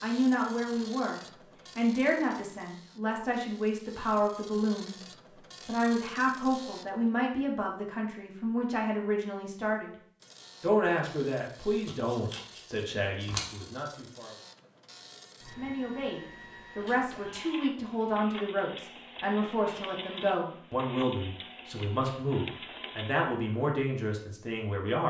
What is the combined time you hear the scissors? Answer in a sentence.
The scissors can be heard for 2 seconds in total.